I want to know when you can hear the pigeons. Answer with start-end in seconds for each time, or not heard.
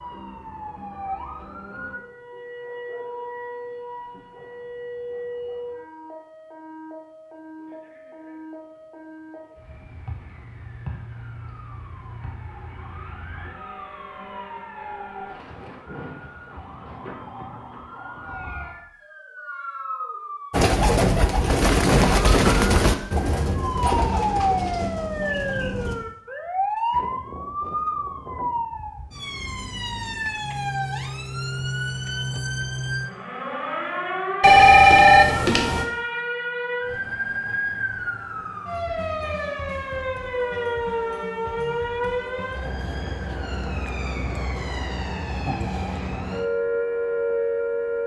20.5-25.9.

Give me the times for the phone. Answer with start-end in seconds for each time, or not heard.
34.4-35.9.